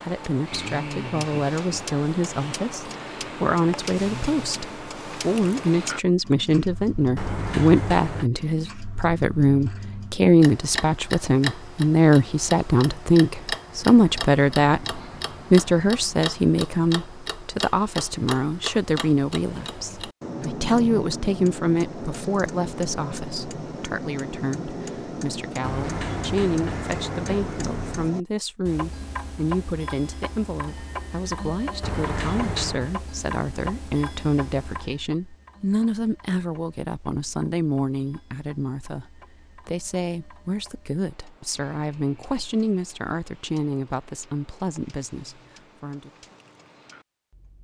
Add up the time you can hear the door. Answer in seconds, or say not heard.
5 s.